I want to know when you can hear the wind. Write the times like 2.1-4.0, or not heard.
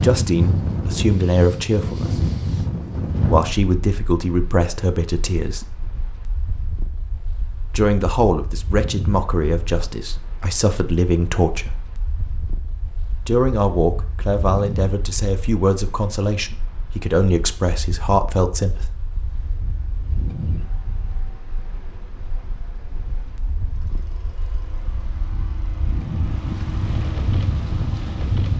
0.0-28.5.